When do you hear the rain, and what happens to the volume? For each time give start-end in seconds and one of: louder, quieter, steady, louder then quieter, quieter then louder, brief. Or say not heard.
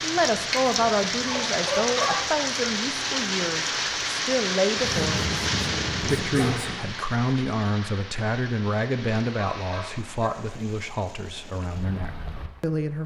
0.0-13.0 quieter.